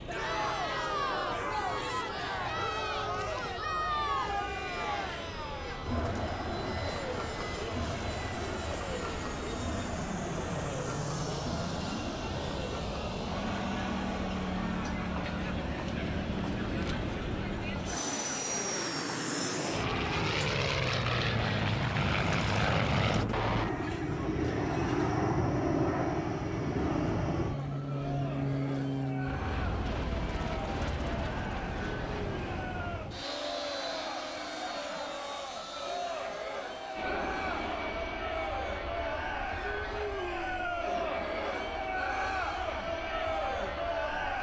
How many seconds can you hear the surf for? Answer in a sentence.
You can't hear the surf here.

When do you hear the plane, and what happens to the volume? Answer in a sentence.
You can hear the plane from 0.0 to 44.3 s, getting louder then quieter.